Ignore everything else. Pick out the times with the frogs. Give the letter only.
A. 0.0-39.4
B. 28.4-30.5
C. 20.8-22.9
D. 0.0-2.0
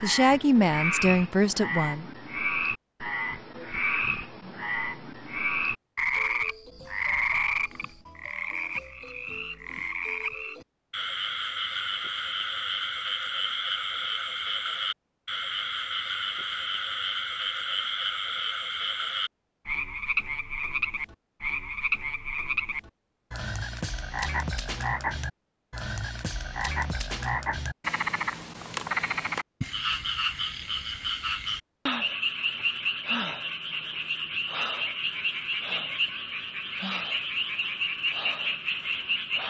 A.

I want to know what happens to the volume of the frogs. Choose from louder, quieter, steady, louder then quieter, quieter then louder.
steady.